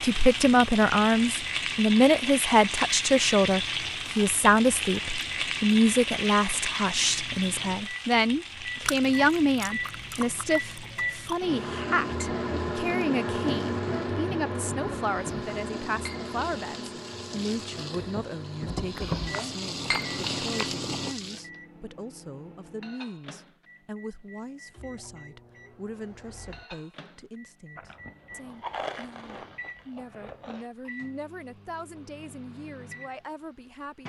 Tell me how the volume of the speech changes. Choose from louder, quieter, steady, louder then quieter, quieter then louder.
quieter.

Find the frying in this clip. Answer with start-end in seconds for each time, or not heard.
0.0-21.4.